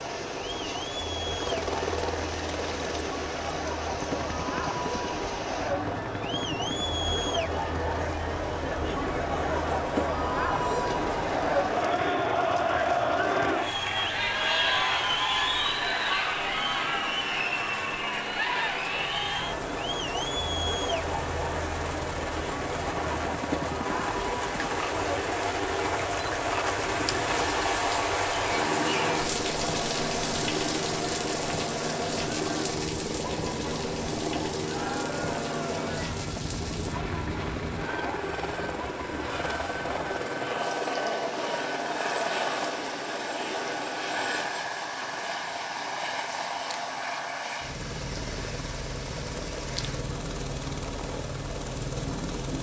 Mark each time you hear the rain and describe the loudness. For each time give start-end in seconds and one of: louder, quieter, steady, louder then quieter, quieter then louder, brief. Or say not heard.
0.0-52.5 louder then quieter.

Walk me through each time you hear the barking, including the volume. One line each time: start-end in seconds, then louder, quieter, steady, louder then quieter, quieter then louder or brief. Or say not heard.
not heard.